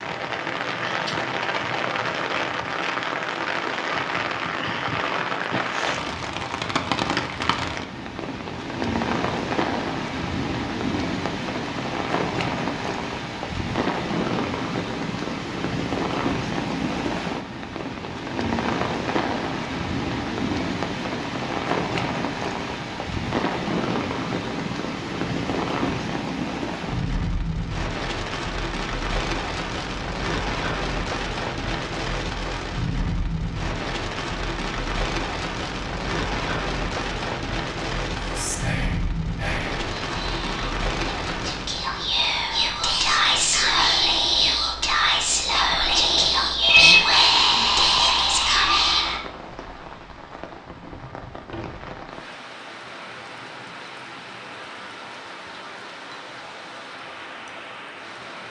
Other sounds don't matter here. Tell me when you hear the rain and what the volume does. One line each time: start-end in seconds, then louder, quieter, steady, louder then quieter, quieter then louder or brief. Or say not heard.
0.0-58.4 quieter.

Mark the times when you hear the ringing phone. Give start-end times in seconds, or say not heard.
46.6-48.1.